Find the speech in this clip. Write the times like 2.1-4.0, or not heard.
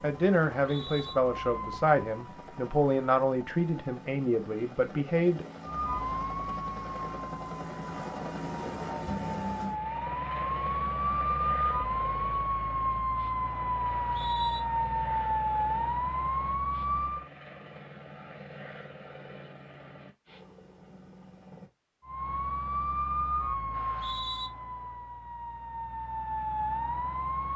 0.0-5.5.